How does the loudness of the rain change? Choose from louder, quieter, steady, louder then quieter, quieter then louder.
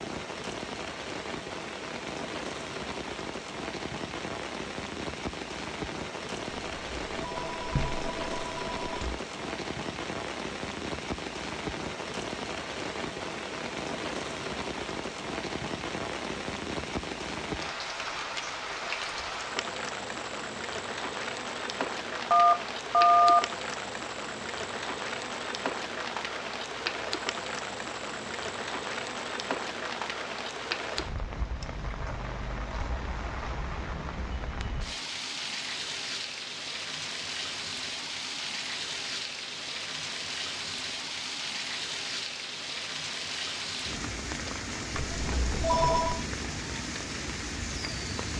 steady.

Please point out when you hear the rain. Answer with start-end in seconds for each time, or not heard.
0.0-48.3.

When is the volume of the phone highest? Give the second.
23 s.